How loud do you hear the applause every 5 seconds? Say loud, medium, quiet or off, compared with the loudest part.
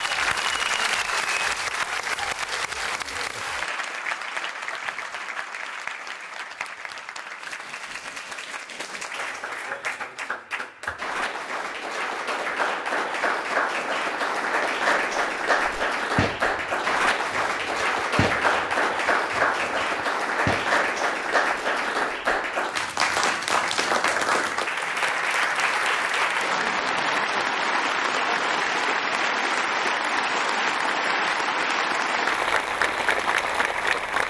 loud, medium, loud, loud, loud, loud, loud.